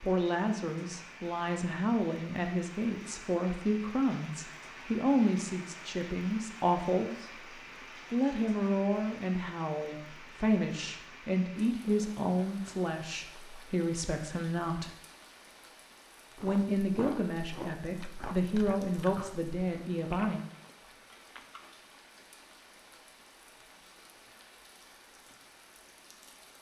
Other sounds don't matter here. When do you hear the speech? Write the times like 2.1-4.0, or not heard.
0.0-7.5, 8.1-14.9, 16.4-20.4.